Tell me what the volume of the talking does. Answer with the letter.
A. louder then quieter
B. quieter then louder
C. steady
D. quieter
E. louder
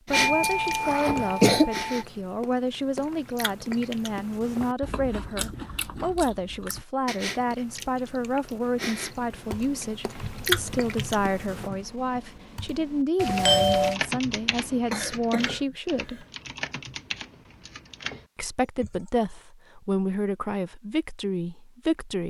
C.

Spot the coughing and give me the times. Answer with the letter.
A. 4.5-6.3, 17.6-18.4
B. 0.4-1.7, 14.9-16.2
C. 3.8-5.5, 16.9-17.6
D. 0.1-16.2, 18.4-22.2
B.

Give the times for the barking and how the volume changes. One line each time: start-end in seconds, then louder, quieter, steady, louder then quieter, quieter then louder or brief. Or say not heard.
not heard.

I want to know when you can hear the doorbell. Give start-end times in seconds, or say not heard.
0.1-1.9, 13.2-13.9.